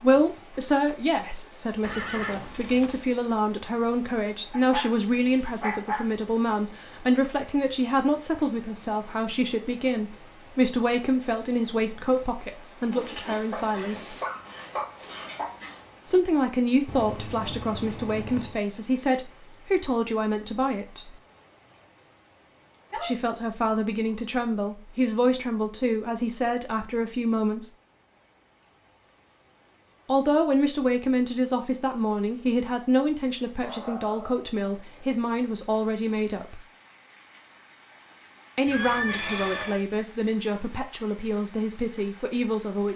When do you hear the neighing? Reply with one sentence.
The neighing can be heard from 1.8 to 3.1 s, from 16.9 to 18.6 s and from 38.6 to 39.9 s.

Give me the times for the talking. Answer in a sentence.
You can hear the talking from 0.0 to 14.2 s, from 16.1 to 21.1 s, from 23.0 to 27.7 s, from 30.1 to 36.6 s and from 38.5 to 42.9 s.